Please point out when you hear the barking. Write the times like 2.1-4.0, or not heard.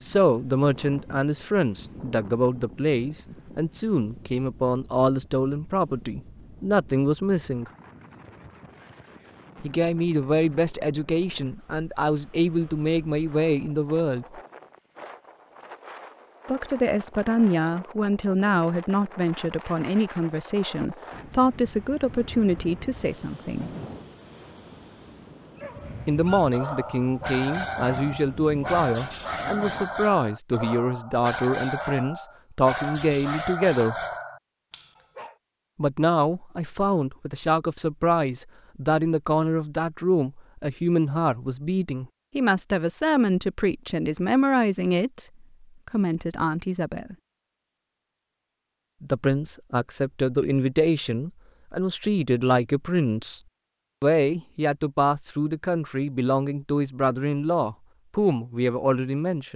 25.6-35.4.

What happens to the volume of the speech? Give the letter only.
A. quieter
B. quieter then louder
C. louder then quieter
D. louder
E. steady
E.